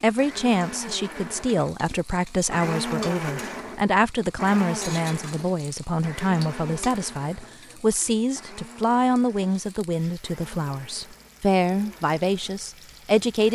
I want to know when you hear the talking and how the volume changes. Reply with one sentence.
The talking can be heard from 0.0 to 13.5 s, at a steady volume.